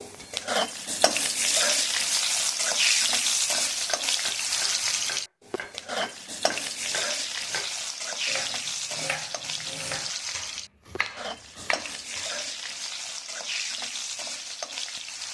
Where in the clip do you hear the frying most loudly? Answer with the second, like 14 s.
3 s.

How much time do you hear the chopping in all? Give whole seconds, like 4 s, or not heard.
9 s.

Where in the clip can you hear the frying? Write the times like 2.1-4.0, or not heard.
0.0-15.3.